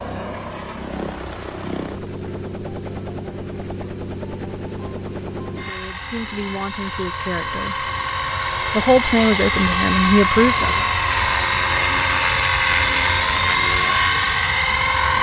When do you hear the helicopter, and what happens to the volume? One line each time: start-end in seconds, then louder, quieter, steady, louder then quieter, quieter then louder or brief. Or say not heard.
0.0-15.1 louder.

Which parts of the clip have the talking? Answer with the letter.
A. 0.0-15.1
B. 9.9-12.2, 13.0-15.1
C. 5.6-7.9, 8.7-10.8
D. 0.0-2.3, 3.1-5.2
C.